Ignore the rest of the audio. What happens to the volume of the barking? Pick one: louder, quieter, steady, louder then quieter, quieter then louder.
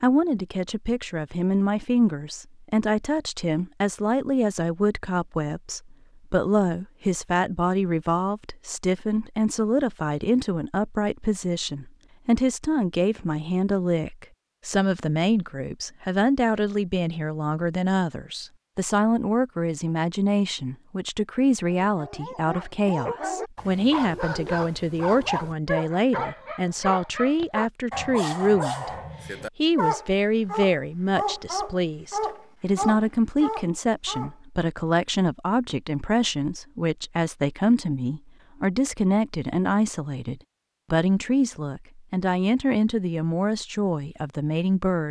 steady.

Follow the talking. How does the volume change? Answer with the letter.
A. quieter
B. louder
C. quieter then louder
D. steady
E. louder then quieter
D.